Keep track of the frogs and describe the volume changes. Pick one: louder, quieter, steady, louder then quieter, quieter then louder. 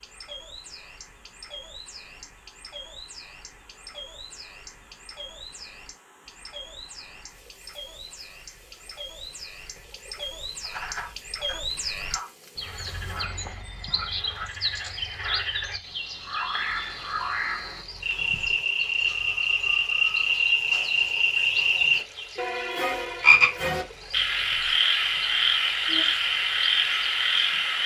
louder.